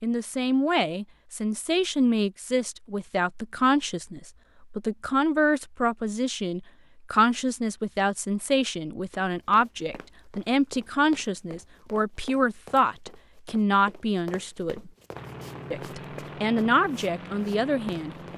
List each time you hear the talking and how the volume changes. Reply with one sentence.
The talking can be heard from 0.0 to 14.9 s, at a steady volume; and briefly from 15.7 to 18.1 s.